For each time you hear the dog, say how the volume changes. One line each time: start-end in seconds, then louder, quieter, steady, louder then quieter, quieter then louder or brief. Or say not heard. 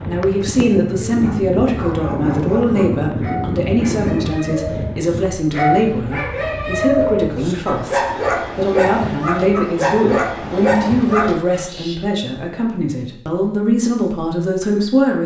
1.2-11.9 louder.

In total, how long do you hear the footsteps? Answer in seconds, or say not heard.
not heard.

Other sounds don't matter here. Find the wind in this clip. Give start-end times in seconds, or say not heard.
0.0-11.3.